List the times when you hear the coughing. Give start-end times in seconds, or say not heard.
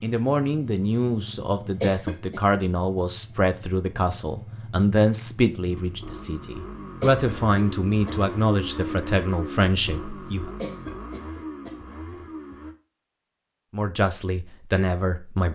1.8-2.4, 7.0-8.2, 10.6-11.8.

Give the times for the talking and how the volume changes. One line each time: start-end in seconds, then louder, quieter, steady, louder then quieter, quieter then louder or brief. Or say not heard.
0.0-10.5 steady
13.7-15.5 brief.